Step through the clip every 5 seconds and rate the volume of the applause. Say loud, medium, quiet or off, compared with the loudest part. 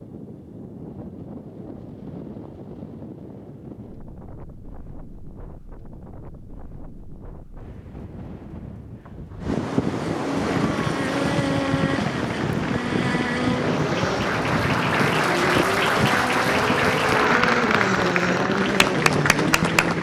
off, off, medium, loud.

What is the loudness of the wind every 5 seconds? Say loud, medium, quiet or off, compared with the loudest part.
quiet, medium, loud, loud.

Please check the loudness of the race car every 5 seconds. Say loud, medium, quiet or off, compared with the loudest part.
off, off, loud, loud.